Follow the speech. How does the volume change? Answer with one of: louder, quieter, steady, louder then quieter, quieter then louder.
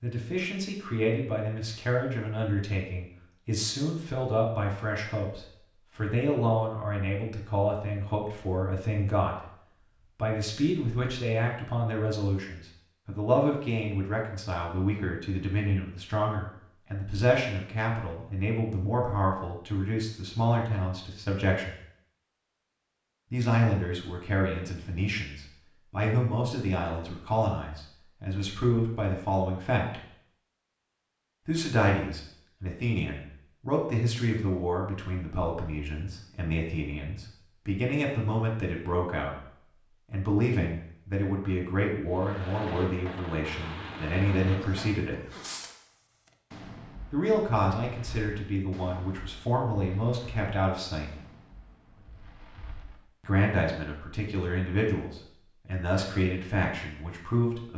steady.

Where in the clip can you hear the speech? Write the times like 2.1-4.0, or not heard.
0.0-9.6, 10.2-21.8, 23.3-30.0, 31.4-45.2, 47.1-51.2, 53.2-57.7.